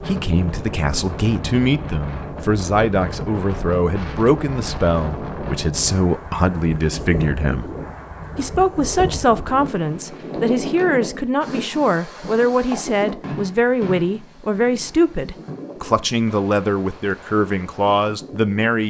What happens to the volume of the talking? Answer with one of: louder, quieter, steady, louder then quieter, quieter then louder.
steady.